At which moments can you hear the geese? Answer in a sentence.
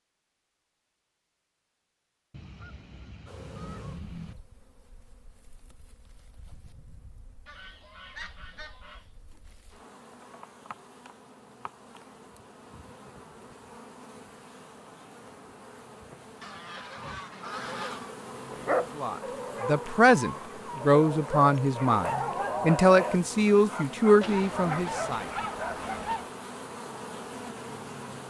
You can hear the geese from 2.3 to 4.3 s, from 7.5 to 9.1 s, from 16.4 to 18.1 s and from 24.2 to 26.3 s.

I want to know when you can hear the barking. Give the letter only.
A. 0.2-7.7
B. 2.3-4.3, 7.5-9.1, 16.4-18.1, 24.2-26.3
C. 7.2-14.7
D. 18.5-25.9
D.